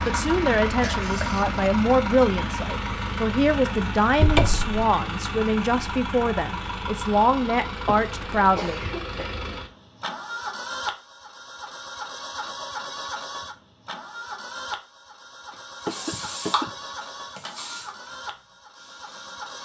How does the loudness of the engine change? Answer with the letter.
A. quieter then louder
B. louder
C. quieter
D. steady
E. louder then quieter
C.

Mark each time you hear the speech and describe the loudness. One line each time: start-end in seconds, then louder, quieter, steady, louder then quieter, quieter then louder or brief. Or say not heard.
0.1-8.8 steady.